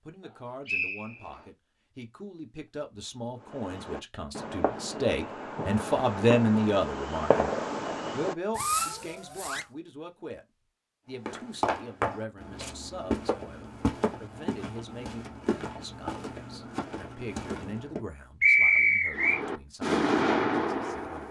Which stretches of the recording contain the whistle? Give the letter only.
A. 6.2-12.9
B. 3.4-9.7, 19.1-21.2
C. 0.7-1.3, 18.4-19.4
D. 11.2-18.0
C.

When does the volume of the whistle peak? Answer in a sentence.
The volume of the whistle peaks at 19 seconds.